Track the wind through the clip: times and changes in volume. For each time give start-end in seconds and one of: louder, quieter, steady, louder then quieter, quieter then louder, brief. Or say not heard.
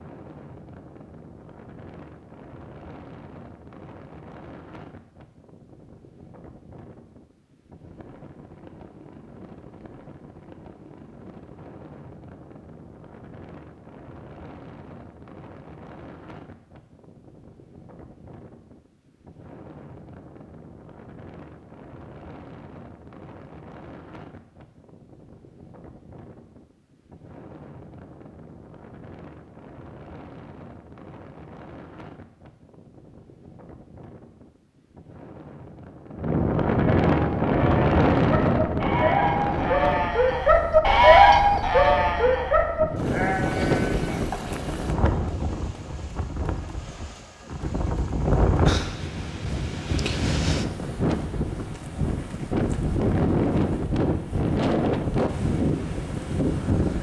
0.0-56.9 louder.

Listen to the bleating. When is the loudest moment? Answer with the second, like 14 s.
41 s.